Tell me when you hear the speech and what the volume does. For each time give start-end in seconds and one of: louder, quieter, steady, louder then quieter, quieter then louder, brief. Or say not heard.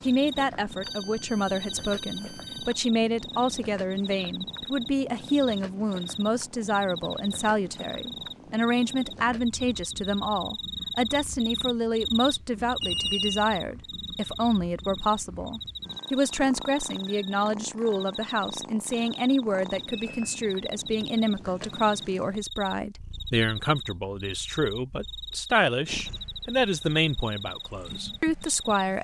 0.1-28.9 steady.